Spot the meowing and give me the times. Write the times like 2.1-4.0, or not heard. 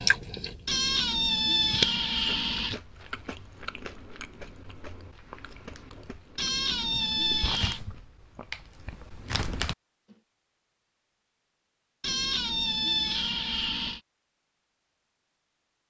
0.7-2.8, 6.3-7.8, 12.0-14.0.